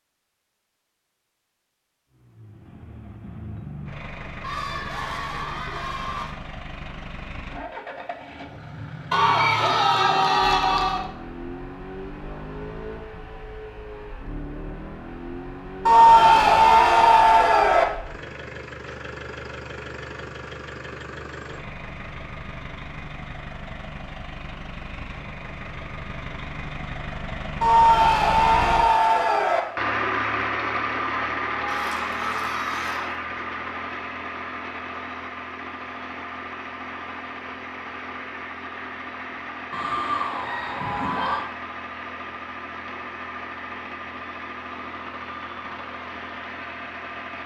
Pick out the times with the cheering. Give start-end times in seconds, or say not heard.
4.4-6.3, 9.1-11.1, 15.8-17.9, 27.6-29.6, 31.6-33.1, 39.7-41.5.